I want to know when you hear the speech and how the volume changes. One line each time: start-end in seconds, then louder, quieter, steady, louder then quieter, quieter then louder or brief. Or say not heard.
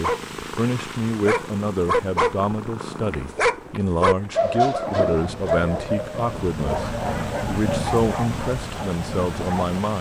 0.0-9.9 steady.